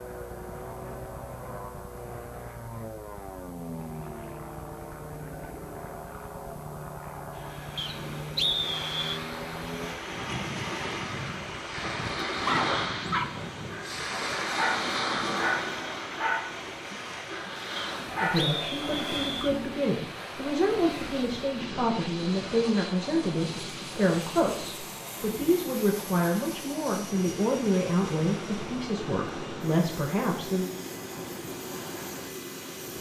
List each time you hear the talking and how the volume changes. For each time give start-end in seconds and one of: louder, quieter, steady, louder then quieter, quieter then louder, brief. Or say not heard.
18.2-30.7 steady.